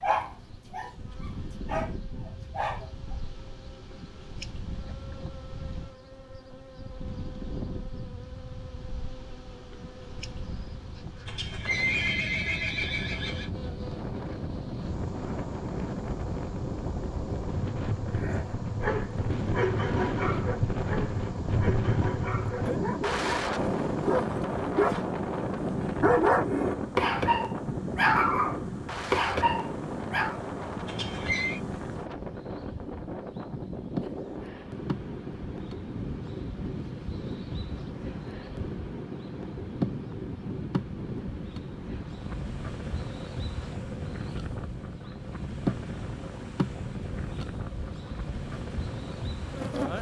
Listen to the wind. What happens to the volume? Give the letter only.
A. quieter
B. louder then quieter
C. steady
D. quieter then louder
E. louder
B.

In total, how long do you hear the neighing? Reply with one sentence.
The neighing can be heard for 3 seconds in total.